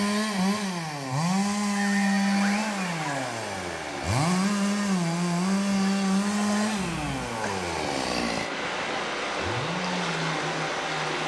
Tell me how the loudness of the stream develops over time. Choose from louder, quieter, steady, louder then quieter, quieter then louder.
louder.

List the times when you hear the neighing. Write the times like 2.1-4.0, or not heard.
1.8-3.3, 5.7-7.6.